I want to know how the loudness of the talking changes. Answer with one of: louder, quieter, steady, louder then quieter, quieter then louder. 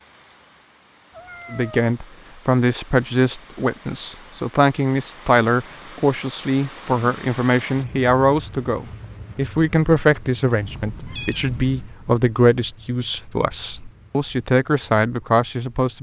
steady.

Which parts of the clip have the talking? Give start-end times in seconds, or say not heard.
1.5-15.9.